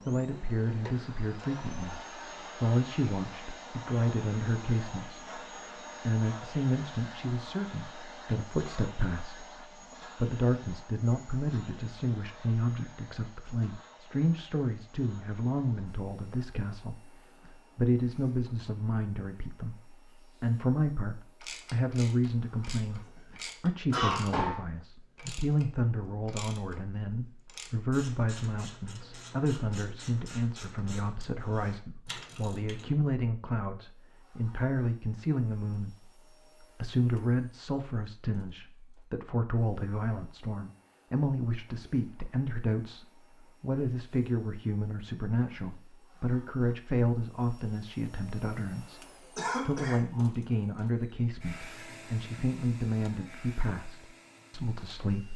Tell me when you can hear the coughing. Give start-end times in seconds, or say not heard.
23.9-24.6, 49.4-50.3.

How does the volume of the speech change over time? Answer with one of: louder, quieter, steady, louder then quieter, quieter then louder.
steady.